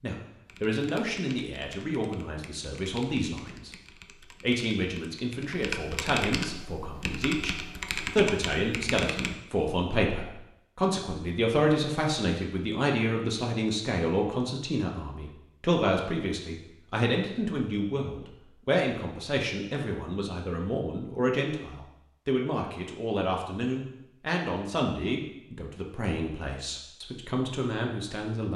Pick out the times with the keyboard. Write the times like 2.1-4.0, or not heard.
0.5-9.3.